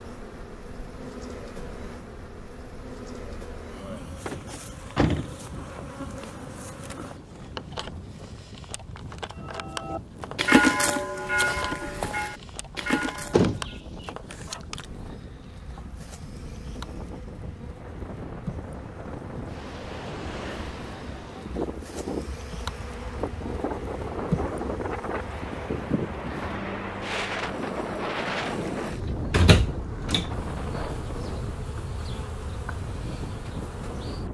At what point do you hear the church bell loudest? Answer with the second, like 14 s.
11 s.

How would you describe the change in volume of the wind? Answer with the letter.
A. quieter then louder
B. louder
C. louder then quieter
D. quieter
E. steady
B.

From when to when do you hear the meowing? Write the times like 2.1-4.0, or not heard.
not heard.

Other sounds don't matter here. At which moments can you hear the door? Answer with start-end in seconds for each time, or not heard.
4.2-5.7, 13.3-14.1, 28.7-30.3.